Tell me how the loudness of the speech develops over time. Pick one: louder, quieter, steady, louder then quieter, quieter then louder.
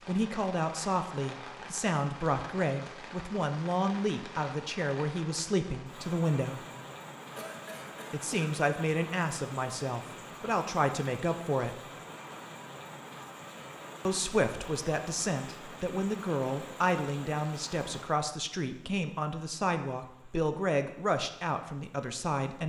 steady.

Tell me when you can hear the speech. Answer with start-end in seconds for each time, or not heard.
0.1-6.7, 8.1-11.8, 14.1-22.6.